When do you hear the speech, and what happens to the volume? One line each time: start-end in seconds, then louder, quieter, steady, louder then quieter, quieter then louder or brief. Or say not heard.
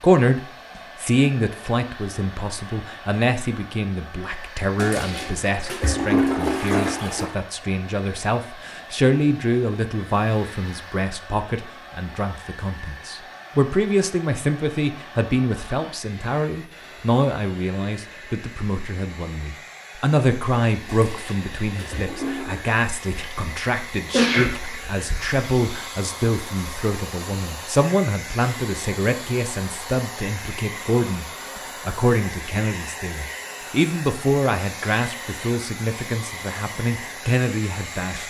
0.0-38.2 steady.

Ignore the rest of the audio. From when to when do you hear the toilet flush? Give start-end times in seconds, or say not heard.
4.8-7.3, 20.9-22.6.